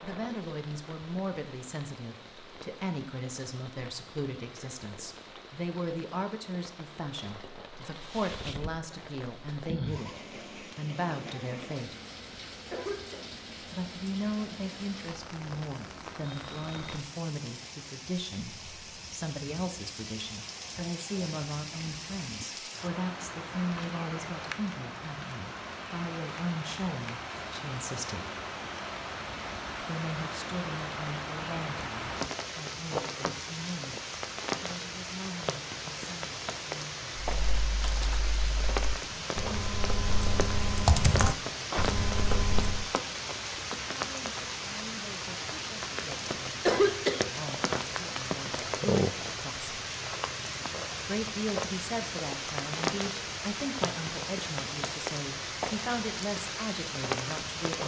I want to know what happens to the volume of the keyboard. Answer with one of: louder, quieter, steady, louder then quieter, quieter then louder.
louder then quieter.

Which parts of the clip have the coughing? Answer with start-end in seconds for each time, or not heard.
12.7-13.2, 46.6-47.2.